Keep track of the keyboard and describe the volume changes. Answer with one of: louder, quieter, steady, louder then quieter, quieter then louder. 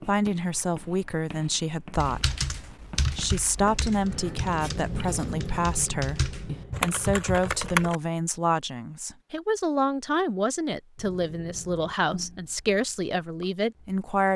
quieter then louder.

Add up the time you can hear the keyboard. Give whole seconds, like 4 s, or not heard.
6 s.